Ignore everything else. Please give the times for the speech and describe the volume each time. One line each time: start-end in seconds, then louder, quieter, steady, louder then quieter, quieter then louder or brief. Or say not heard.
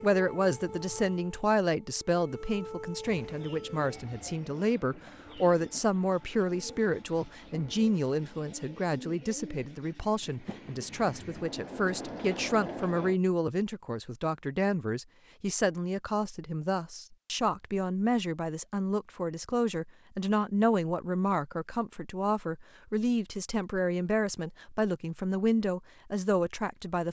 0.0-27.0 steady.